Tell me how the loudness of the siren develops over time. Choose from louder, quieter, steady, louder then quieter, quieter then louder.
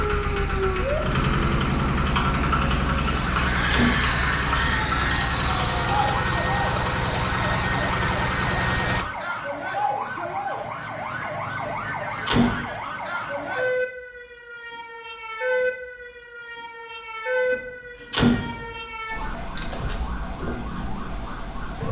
steady.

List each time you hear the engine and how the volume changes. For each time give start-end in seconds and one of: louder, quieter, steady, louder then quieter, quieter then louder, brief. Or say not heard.
0.0-9.1 steady.